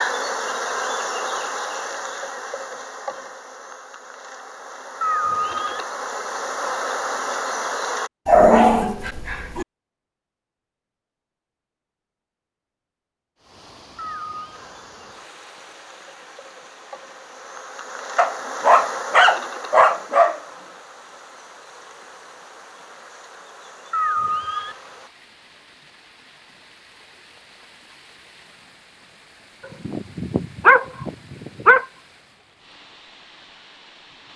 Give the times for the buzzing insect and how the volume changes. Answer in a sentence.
The buzzing insect can be heard from 0.0 to 8.1 s, getting quieter then louder; and from 14.5 to 25.1 s, getting louder then quieter.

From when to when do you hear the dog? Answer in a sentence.
You can hear the dog from 8.2 to 9.7 s, from 18.1 to 20.4 s and from 29.9 to 31.9 s.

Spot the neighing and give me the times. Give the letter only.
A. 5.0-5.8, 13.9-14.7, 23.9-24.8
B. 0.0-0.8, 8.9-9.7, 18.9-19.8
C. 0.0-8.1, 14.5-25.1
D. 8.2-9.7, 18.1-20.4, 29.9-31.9
A.